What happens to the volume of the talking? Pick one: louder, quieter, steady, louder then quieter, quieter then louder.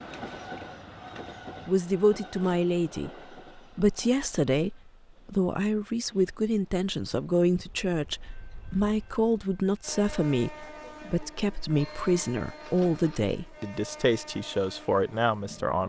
steady.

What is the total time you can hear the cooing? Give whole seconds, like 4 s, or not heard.
2 s.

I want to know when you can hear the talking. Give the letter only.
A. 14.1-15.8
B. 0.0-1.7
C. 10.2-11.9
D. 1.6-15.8
D.